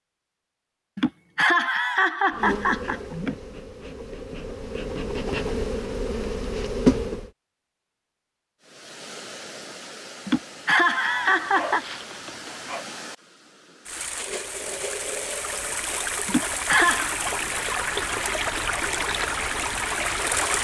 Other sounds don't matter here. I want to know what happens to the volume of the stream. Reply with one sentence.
The loudness of the stream goes up.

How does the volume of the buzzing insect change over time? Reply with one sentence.
The volume of the buzzing insect goes up.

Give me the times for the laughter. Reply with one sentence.
The laughter can be heard from 0.9 to 3.4 s, from 10.2 to 11.8 s and from 16.2 to 17.1 s.